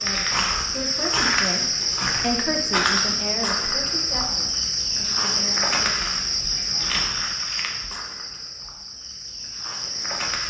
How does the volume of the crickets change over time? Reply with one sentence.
The loudness of the crickets goes down.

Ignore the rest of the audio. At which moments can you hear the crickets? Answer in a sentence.
You can hear the crickets from 0.0 to 10.4 s.